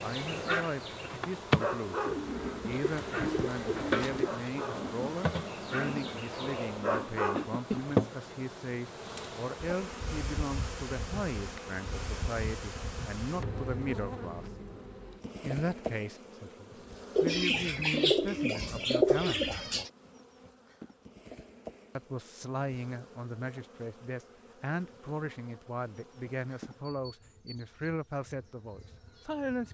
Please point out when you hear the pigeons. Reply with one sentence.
You can hear the pigeons from 2.0 to 4.3 s and from 17.1 to 19.9 s.